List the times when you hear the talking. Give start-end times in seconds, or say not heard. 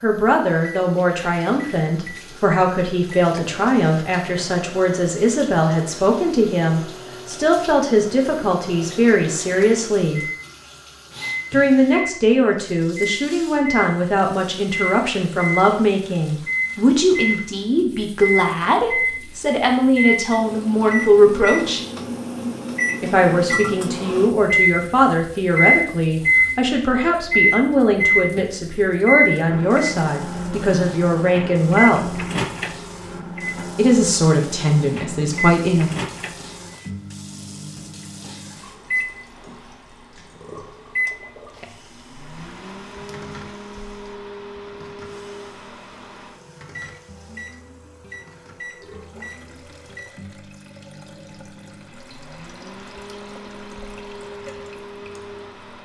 0.0-10.2, 11.5-21.8, 23.0-32.1, 33.8-35.9.